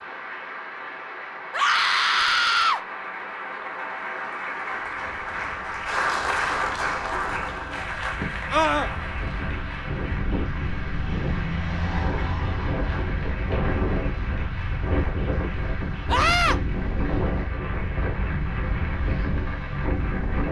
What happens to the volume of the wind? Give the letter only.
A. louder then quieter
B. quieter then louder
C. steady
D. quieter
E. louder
E.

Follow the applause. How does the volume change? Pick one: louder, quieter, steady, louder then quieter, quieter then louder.
louder then quieter.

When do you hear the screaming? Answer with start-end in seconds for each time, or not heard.
1.5-2.8, 8.5-8.9, 16.1-16.6.